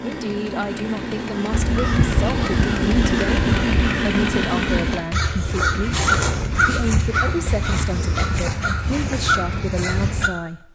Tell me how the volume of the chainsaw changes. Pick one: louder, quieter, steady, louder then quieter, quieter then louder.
louder.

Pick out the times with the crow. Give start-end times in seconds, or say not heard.
1.5-10.3.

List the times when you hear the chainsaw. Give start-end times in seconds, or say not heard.
0.0-5.1.